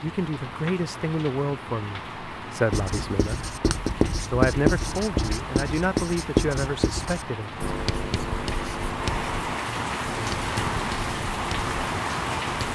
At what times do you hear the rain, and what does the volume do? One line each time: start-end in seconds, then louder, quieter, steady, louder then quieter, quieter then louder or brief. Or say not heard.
0.0-12.7 louder.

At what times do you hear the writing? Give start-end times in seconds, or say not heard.
2.7-12.7.